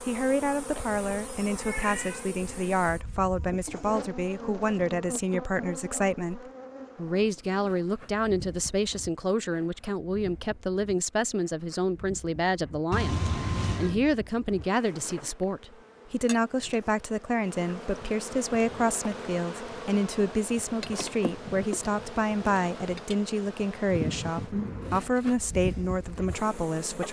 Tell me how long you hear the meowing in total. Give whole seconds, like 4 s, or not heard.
4 s.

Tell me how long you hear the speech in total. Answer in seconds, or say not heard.
27 s.